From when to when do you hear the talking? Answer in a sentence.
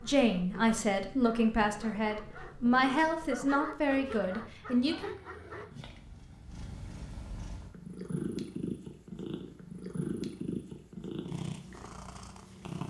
The talking can be heard from 0.0 to 5.2 s.